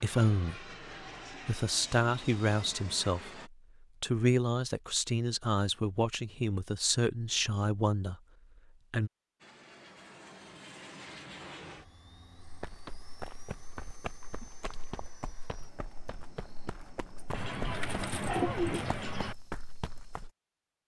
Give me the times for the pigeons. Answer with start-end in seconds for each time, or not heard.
17.3-19.4.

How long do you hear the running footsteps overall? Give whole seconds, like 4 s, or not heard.
8 s.